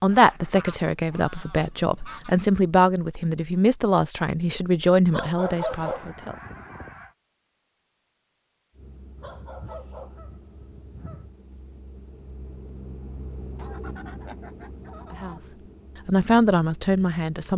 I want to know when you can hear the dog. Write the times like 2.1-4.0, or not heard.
5.1-6.1, 9.2-10.2.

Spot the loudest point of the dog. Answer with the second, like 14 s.
6 s.